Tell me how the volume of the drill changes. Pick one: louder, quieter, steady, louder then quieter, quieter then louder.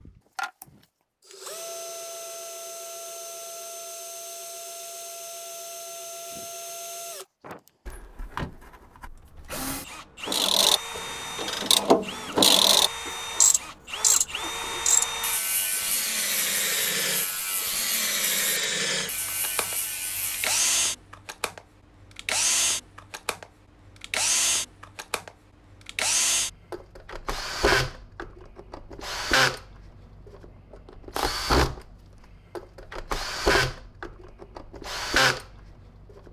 louder.